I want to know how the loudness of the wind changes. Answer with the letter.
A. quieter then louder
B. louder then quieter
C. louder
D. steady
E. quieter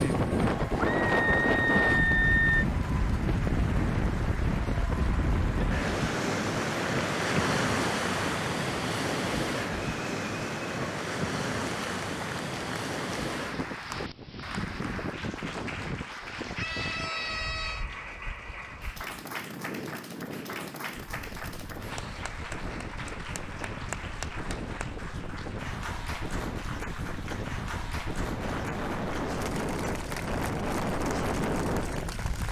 A.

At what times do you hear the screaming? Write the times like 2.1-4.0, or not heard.
0.8-2.6, 16.6-17.9.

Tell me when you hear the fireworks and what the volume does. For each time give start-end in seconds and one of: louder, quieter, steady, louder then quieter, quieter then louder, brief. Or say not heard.
not heard.